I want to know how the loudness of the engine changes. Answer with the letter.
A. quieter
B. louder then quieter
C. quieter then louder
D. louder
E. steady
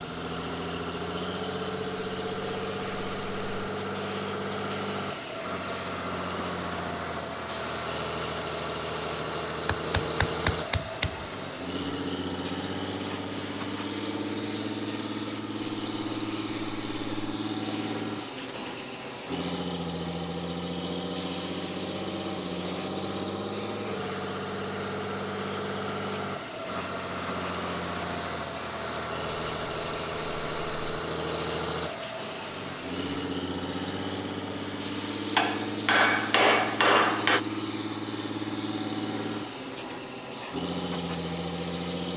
E.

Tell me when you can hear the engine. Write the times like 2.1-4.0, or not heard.
0.0-42.1.